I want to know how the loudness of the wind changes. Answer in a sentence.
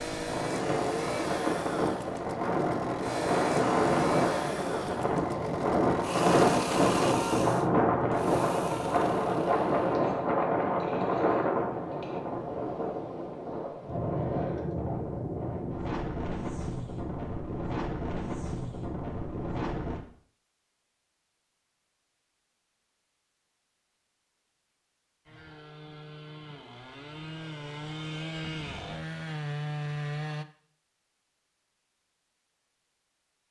The loudness of the wind goes down.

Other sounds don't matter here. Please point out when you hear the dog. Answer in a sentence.
You can't hear the dog here.